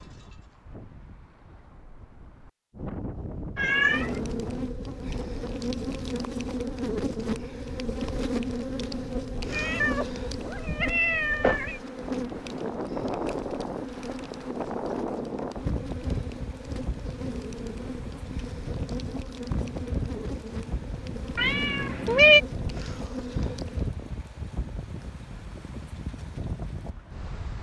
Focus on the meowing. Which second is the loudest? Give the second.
22 s.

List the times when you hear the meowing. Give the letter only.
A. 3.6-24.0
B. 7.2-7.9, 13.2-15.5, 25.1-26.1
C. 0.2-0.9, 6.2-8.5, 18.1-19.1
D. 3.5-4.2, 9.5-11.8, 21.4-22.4
D.